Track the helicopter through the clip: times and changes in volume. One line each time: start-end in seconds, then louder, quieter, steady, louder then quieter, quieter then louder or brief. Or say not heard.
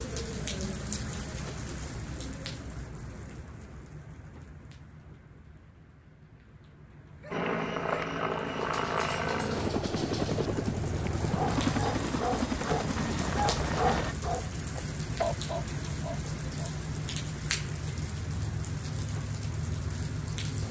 7.3-14.2 steady.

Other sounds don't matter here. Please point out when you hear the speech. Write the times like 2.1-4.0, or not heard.
not heard.